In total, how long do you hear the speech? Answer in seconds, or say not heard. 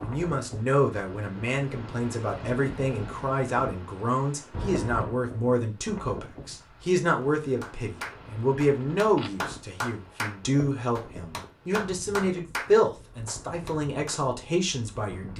15 s.